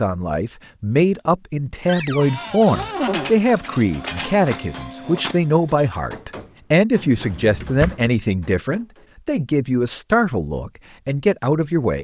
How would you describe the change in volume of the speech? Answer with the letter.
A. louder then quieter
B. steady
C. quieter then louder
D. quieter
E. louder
B.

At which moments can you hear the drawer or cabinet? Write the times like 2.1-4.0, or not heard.
1.9-3.3, 7.0-8.1.